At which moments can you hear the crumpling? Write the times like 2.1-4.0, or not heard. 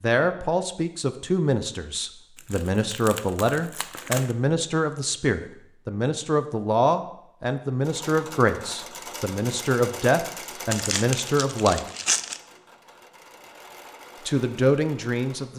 2.4-4.3, 10.7-12.4.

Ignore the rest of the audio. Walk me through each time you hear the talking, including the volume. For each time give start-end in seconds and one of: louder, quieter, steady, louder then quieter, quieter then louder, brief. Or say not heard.
0.0-11.8 steady
14.2-15.5 brief.